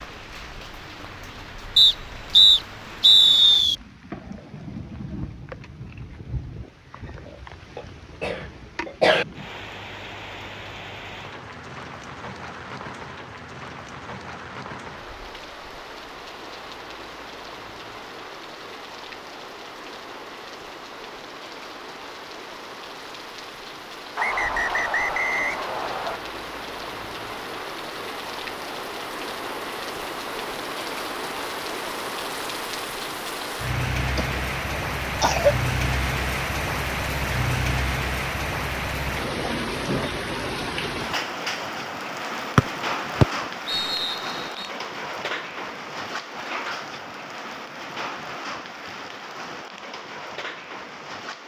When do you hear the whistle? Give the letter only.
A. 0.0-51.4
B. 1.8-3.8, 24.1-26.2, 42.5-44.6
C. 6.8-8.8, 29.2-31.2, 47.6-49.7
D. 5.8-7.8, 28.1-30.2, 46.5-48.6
B.